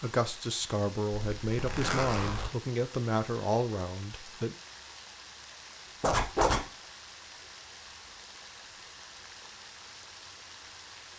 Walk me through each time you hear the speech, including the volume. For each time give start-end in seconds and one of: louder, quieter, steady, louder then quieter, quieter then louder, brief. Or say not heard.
0.0-4.5 steady.